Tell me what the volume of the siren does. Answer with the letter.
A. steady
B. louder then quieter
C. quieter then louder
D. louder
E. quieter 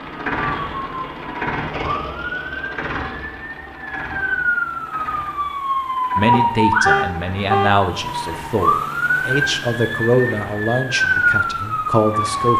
D.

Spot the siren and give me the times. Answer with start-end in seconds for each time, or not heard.
0.0-12.5.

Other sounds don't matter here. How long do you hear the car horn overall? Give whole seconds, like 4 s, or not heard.
2 s.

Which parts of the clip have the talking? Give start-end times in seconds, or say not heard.
6.2-12.5.